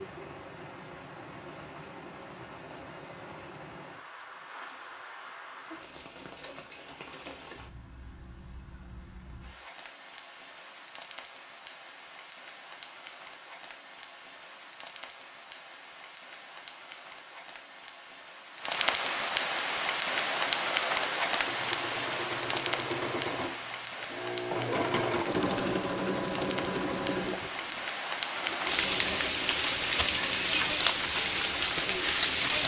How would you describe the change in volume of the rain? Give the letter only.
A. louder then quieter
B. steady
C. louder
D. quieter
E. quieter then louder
C.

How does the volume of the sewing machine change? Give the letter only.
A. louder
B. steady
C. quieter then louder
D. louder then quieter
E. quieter
D.